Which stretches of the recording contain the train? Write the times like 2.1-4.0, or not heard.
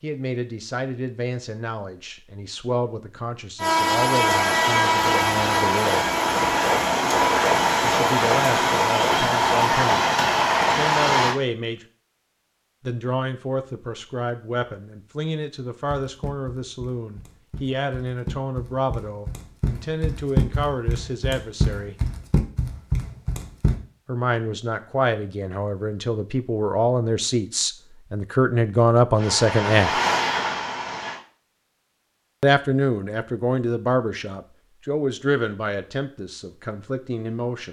3.5-11.4, 29.1-31.2.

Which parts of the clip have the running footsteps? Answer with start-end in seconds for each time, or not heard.
16.0-23.8.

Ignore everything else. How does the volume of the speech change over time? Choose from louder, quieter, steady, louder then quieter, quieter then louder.
louder.